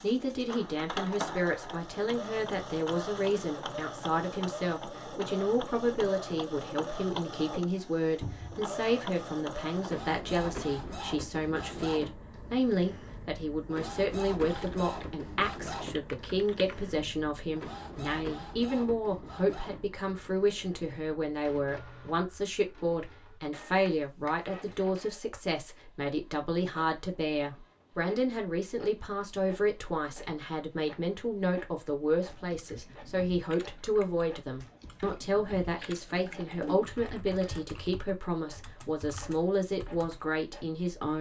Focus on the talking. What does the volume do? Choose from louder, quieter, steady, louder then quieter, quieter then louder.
steady.